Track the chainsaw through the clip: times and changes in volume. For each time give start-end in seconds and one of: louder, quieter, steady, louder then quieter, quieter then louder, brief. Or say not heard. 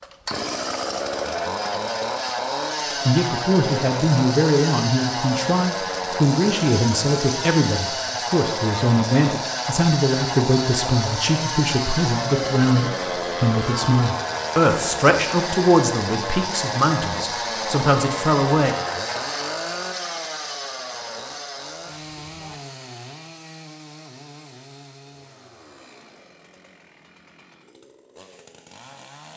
0.0-29.3 quieter.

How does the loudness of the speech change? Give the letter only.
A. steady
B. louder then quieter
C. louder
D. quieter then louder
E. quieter
A.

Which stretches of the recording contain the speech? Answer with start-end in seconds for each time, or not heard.
3.0-18.8.